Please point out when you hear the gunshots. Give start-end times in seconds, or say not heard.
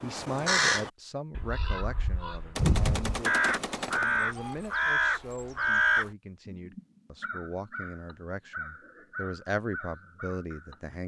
2.5-4.5.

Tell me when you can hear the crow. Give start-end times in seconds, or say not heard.
0.0-10.8.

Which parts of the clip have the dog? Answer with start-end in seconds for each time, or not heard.
not heard.